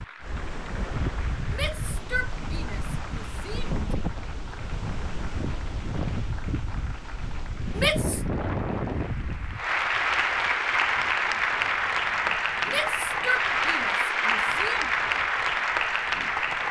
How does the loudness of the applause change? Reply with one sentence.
The volume of the applause goes up.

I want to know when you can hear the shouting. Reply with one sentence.
The shouting can be heard from 1.5 to 3.8 s, from 7.8 to 8.2 s and from 12.7 to 14.9 s.